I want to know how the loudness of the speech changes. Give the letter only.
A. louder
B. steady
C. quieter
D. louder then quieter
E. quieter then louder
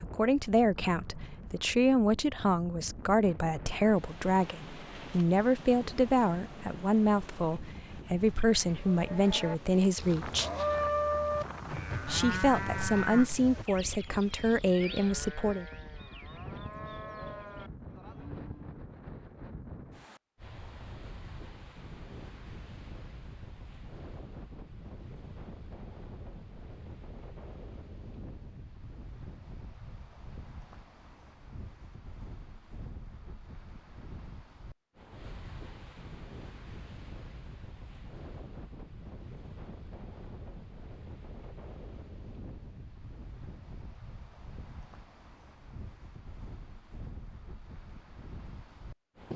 B.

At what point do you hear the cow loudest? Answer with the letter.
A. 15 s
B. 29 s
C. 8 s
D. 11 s
D.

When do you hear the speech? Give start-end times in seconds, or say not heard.
0.0-10.5, 12.1-15.7.